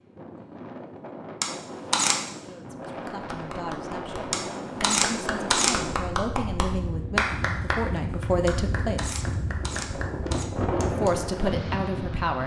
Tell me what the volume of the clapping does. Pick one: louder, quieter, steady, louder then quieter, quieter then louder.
louder then quieter.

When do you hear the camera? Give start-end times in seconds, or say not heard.
1.4-2.2, 4.3-5.8, 8.4-10.4.